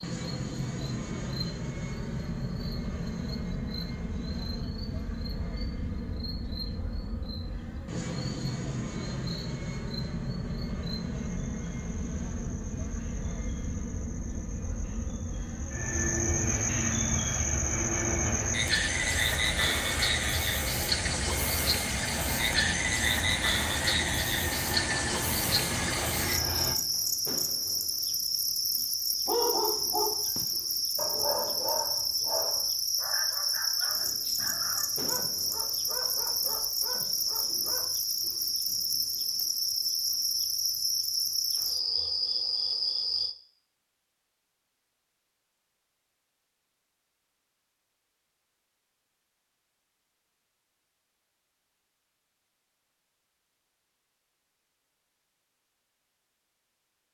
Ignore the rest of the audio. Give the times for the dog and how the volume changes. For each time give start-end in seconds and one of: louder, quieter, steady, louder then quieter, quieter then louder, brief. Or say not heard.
29.2-37.9 quieter.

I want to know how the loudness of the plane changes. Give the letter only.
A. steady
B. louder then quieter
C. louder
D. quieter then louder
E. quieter
A.